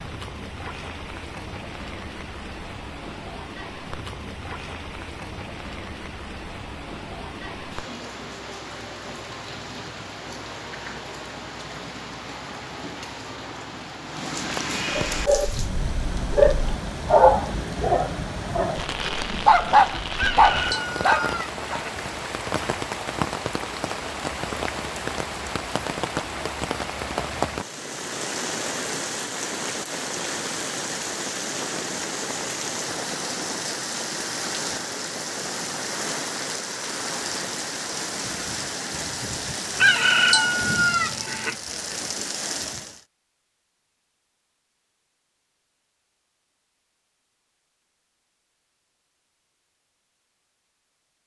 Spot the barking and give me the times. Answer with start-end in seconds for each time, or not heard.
14.9-21.8.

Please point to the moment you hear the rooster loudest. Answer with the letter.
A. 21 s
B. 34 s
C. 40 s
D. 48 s
C.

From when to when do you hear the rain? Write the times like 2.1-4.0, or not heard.
0.0-43.0.